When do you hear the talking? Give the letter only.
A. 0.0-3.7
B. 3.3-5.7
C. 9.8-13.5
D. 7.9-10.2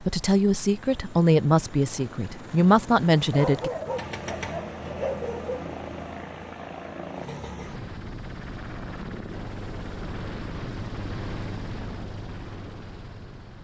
A.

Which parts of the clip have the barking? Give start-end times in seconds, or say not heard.
3.3-5.7.